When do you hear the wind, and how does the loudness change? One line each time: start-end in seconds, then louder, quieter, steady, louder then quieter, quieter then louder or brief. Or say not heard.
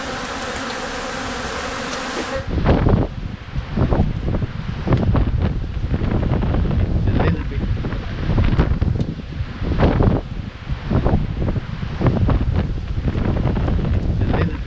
0.0-14.6 steady.